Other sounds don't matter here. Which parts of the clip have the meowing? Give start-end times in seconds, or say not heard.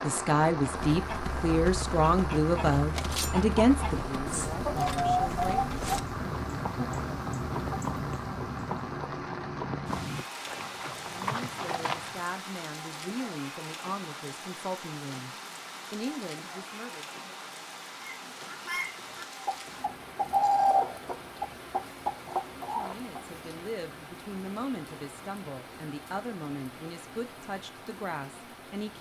not heard.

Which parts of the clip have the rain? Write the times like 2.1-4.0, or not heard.
0.0-28.9.